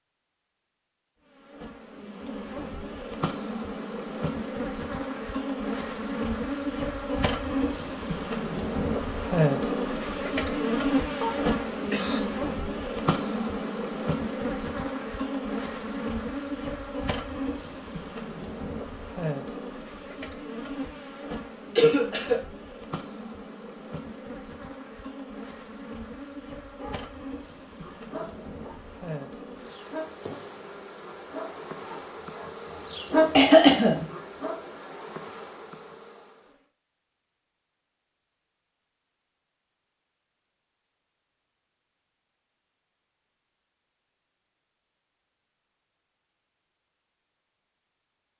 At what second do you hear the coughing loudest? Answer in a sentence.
The loudest moment of the coughing is at 34 seconds.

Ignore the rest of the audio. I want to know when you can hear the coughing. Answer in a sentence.
The coughing can be heard from 11.2 to 12.2 s, from 21.8 to 22.4 s and from 33.4 to 34.0 s.